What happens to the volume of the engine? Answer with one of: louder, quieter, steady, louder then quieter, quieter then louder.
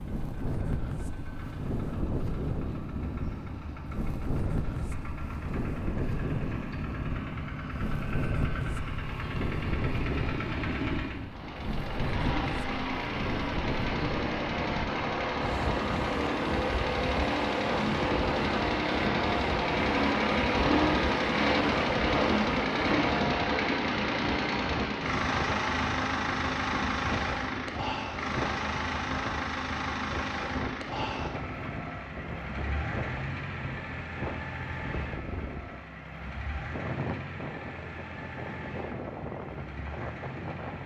louder then quieter.